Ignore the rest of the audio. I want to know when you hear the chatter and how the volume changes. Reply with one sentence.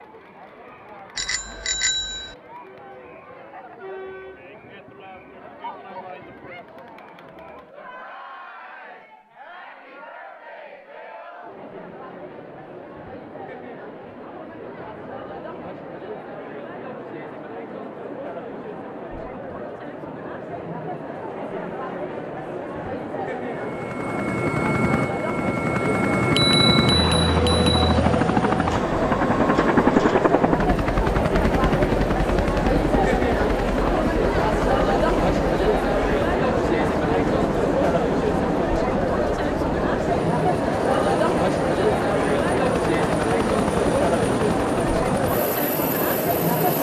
You can hear the chatter from 0.0 to 46.7 s, getting louder.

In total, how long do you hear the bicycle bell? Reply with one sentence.
The bicycle bell can be heard for 3 seconds in total.